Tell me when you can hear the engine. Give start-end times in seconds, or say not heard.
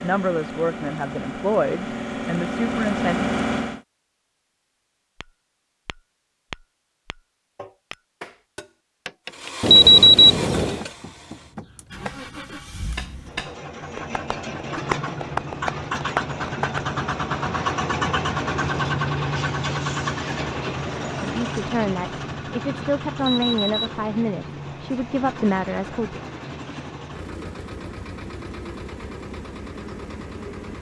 0.0-3.8, 9.2-30.7.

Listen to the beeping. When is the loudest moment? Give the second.
10 s.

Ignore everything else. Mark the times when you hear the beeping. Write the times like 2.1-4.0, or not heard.
9.6-10.8, 23.1-24.0.